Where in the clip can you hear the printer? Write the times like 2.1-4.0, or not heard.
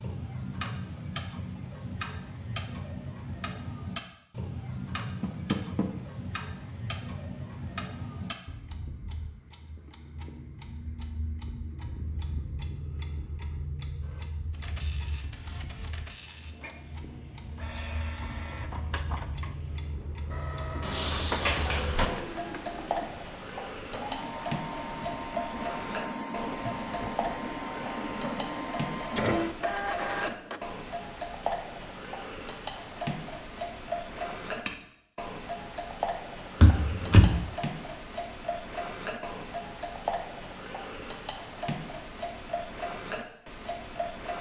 14.0-30.7.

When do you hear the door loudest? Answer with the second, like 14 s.
37 s.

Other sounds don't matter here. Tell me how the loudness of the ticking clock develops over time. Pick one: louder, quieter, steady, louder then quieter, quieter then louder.
quieter then louder.